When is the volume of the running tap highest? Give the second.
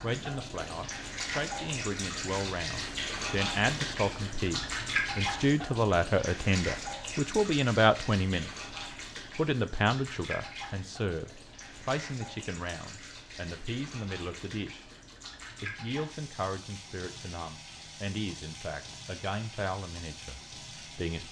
5 s.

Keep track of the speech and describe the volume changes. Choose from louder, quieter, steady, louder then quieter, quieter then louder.
louder then quieter.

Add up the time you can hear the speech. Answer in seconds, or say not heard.
20 s.